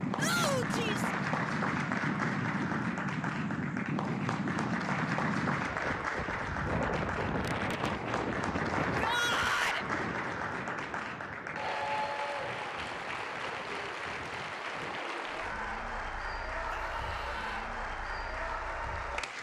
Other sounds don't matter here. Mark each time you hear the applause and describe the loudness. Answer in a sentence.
You can hear the applause from 0.0 to 19.3 s, at a steady volume.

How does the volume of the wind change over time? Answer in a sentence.
The volume of the wind goes down.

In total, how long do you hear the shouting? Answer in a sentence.
You can hear the shouting for 3 seconds altogether.